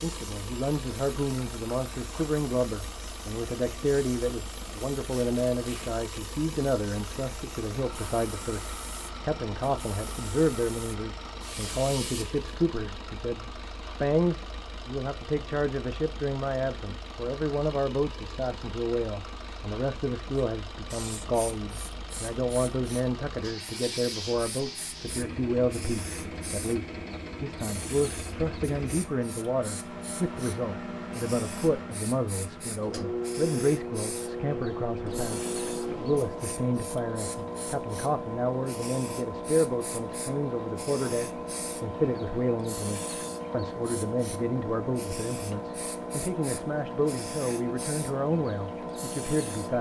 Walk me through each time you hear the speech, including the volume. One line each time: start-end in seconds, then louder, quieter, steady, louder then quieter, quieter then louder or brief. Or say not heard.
0.0-49.7 steady.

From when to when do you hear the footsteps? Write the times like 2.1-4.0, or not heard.
not heard.